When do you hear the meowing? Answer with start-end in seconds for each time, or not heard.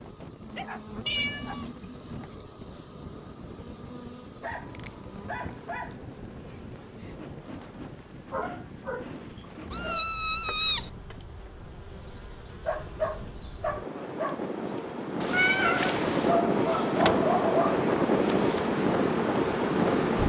1.1-2.4, 9.7-10.9, 15.2-16.4.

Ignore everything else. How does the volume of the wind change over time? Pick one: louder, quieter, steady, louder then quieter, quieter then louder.
louder.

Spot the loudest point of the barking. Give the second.
17 s.